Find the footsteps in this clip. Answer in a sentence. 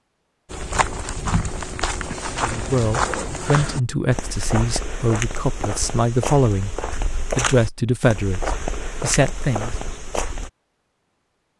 The footsteps can be heard from 0.5 to 10.5 s.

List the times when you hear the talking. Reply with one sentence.
The talking can be heard from 2.3 to 6.8 s and from 7.3 to 9.8 s.